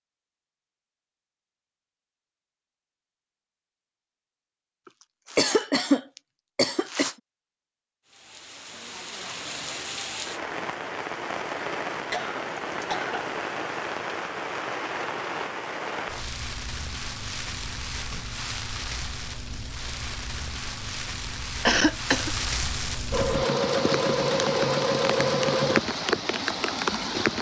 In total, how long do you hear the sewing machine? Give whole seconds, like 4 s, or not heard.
3 s.